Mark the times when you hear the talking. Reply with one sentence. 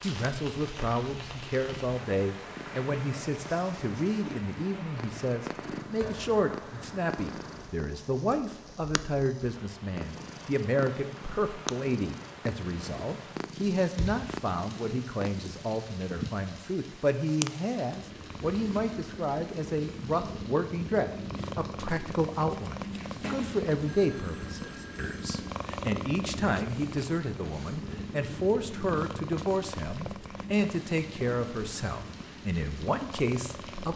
You can hear the talking from 0.0 to 33.9 s.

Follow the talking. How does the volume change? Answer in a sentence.
The loudness of the talking stays about the same.